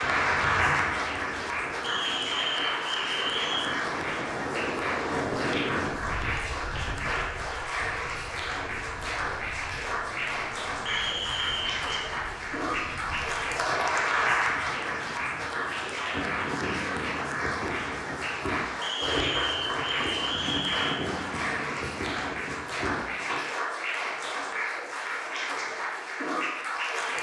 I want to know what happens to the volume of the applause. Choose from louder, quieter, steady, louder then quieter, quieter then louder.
steady.